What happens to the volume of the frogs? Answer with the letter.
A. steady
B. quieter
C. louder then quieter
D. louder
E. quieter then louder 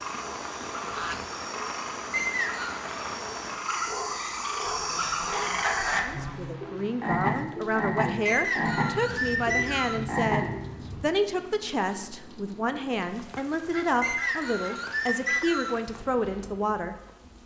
D.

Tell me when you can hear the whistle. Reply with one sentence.
The whistle can be heard from 2.1 to 2.8 s, from 8.2 to 10.1 s and from 14.0 to 15.8 s.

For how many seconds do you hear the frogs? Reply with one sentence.
You can hear the frogs for 11 seconds altogether.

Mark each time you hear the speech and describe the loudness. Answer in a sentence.
You can hear the speech from 5.9 to 17.0 s, at a steady volume.